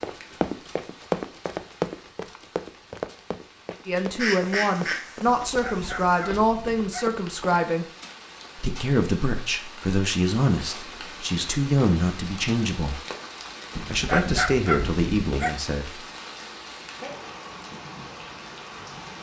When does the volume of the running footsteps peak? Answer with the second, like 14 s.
1 s.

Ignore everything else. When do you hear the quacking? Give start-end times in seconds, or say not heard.
4.2-6.3.